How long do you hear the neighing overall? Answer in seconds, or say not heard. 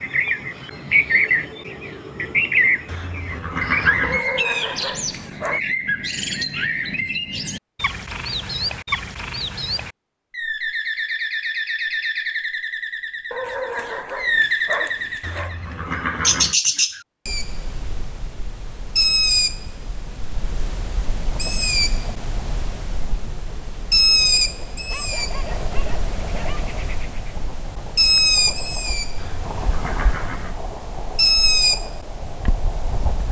4 s.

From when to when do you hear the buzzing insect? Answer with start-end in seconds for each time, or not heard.
not heard.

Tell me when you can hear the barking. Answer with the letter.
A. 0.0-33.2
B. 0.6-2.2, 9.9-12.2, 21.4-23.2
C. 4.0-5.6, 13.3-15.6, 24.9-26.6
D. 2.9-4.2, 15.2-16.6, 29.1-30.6
C.